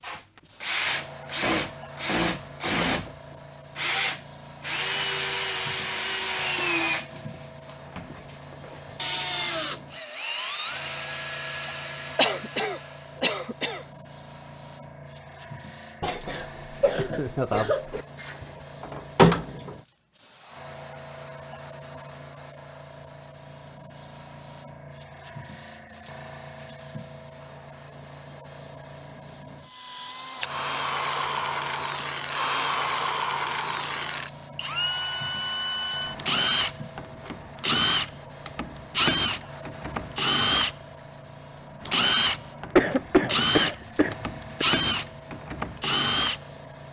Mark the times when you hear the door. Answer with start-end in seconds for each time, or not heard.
18.2-19.8.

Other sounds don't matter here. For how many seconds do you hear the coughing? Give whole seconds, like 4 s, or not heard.
6 s.